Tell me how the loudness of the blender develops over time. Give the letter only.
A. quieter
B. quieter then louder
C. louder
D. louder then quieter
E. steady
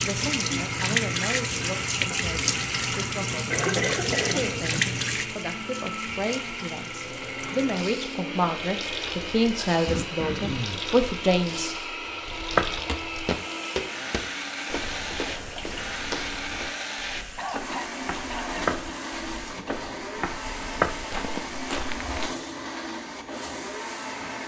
E.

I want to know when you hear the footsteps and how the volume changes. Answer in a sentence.
The footsteps can be heard from 12.2 to 22.3 s, getting quieter then louder.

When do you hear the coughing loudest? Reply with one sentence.
The volume of the coughing peaks at 4 seconds.